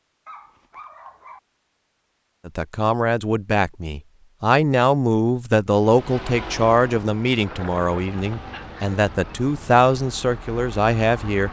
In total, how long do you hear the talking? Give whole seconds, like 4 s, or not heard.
9 s.